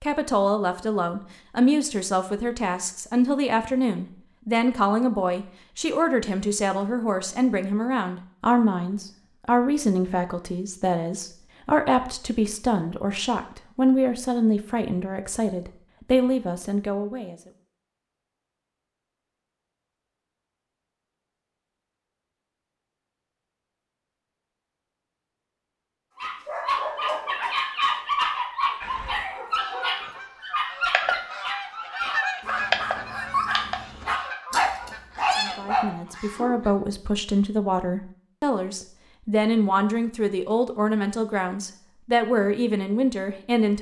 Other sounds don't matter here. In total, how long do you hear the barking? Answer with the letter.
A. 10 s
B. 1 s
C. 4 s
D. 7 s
A.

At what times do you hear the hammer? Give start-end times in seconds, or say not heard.
not heard.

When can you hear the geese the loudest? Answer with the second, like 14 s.
33 s.